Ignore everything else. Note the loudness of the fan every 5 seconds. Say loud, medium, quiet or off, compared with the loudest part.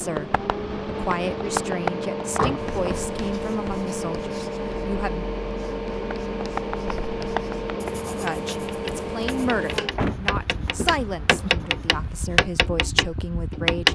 loud, loud, medium.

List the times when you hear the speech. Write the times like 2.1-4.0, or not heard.
0.0-5.2, 8.2-13.9.